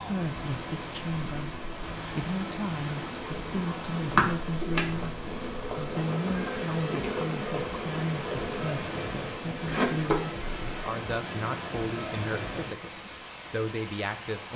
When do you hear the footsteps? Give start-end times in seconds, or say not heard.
not heard.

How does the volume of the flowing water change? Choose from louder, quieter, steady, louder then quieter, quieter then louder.
steady.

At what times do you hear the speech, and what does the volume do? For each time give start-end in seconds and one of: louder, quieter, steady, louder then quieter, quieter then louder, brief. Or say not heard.
0.1-12.9 steady
13.5-14.5 brief.